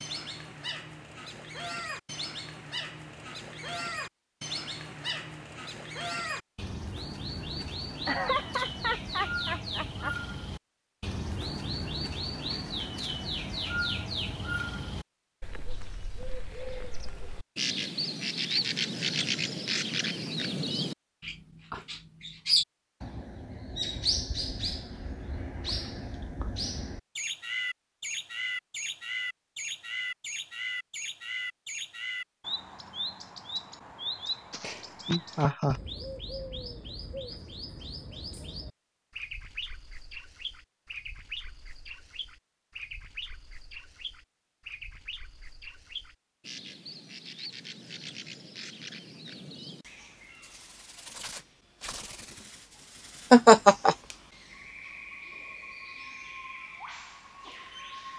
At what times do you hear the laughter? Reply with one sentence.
You can hear the laughter from 8.1 to 10.1 s, from 34.5 to 35.8 s and from 53.3 to 54.0 s.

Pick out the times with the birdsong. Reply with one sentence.
You can hear the birdsong from 0.0 to 58.1 s.